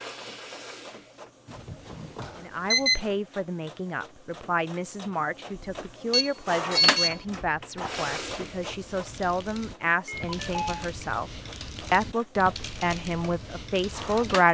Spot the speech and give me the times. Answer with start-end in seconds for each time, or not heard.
2.4-11.3, 11.9-14.5.